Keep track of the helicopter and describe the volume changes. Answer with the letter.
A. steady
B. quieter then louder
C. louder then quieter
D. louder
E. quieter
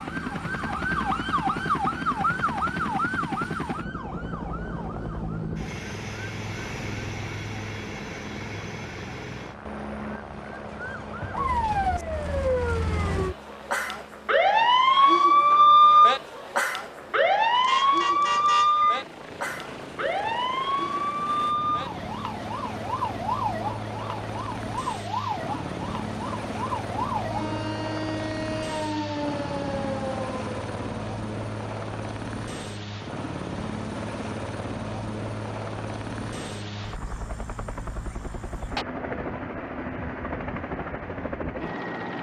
B.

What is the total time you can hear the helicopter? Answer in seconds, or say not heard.
42 s.